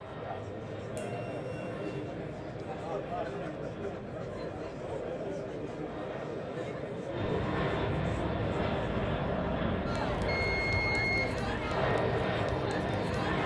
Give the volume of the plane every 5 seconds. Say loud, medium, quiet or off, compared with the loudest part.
quiet, loud, loud.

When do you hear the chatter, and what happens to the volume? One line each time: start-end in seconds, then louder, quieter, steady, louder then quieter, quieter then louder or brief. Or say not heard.
0.0-13.4 steady.